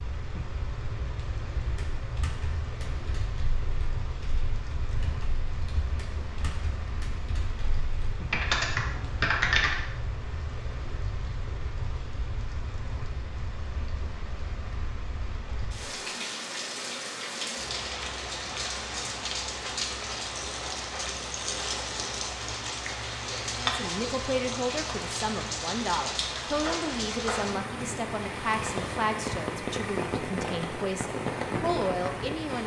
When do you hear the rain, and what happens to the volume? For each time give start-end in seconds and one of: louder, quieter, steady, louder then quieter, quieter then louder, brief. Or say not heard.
0.0-32.6 louder.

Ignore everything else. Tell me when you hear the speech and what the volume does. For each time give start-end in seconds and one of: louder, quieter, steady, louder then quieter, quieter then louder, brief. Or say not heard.
23.6-32.6 steady.